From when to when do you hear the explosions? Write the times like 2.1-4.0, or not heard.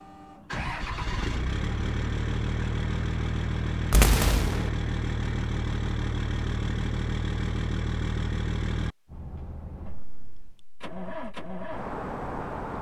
3.9-4.7.